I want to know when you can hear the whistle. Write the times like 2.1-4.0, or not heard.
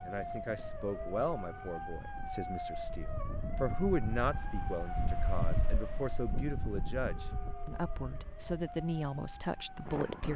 not heard.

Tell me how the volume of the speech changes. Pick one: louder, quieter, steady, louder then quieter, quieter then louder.
steady.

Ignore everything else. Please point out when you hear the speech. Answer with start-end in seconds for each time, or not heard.
0.0-10.3.